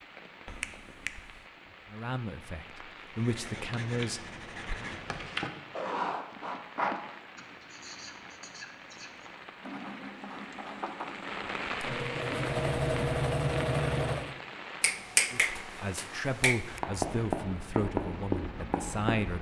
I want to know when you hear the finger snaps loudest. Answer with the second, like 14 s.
15 s.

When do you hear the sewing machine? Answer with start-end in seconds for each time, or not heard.
11.7-14.4.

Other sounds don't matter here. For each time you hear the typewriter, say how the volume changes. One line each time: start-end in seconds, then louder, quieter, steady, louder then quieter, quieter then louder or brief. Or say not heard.
not heard.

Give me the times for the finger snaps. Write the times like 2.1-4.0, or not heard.
0.5-1.4, 14.8-16.8.